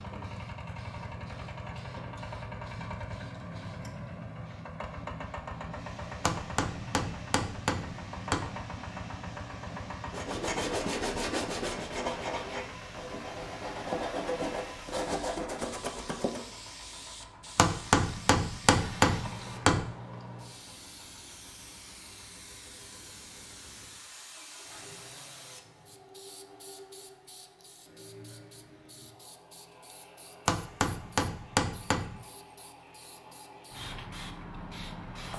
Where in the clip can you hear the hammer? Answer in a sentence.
The hammer can be heard from 6.2 to 8.5 s, from 17.6 to 19.9 s and from 30.4 to 32.2 s.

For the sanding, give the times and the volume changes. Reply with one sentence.
You can hear the sanding from 10.1 to 16.5 s, getting quieter then louder.